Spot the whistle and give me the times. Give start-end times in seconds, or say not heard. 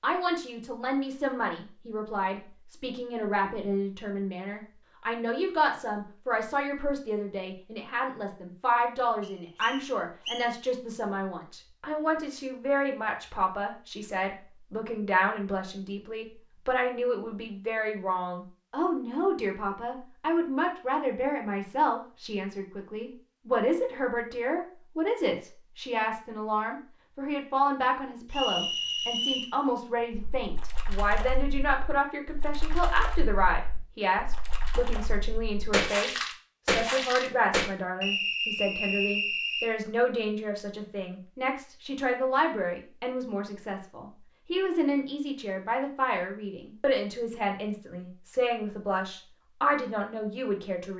9.2-10.5, 28.3-29.6, 38.0-39.7.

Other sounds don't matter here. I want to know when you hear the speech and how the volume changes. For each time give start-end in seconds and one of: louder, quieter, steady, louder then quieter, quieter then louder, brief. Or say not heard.
0.0-50.9 steady.